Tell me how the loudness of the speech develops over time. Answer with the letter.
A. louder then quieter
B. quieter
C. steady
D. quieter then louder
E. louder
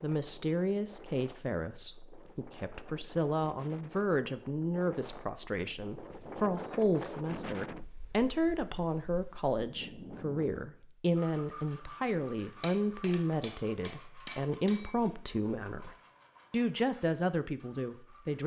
C.